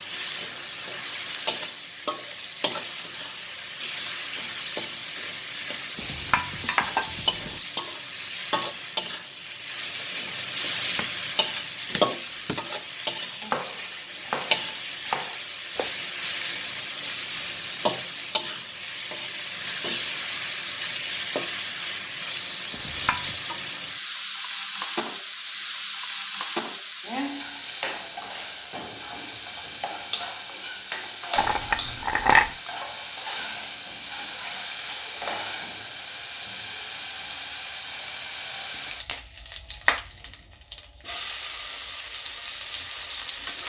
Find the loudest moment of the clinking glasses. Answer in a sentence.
The volume of the clinking glasses peaks at 32 seconds.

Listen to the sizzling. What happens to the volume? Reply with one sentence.
The volume of the sizzling stays about the same.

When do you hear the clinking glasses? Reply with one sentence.
The clinking glasses can be heard from 6.0 to 7.6 s, from 22.7 to 23.4 s and from 31.4 to 32.5 s.